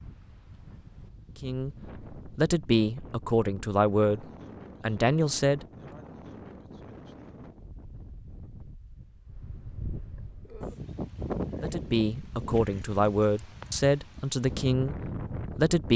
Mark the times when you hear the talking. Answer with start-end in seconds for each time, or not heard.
1.4-5.7, 11.6-15.9.